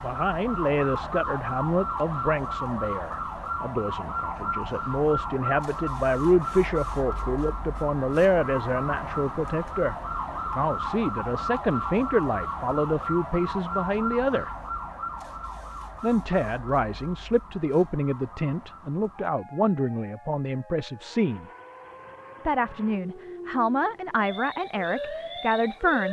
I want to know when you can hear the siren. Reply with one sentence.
The siren can be heard from 0.0 to 26.0 s.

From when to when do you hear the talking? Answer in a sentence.
The talking can be heard from 0.0 to 14.5 s, from 16.0 to 21.4 s and from 22.4 to 26.0 s.